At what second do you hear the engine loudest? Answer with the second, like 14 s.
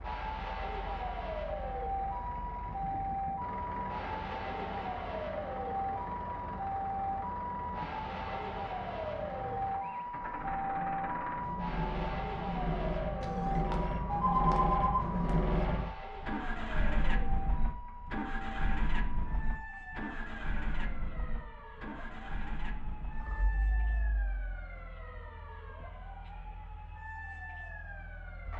15 s.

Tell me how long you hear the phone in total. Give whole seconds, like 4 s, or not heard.
2 s.